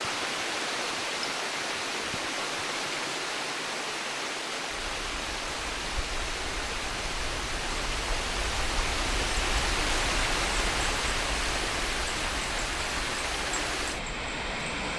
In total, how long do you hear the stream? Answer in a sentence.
The stream can be heard for 15 seconds in total.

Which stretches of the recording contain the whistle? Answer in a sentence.
You can't hear the whistle here.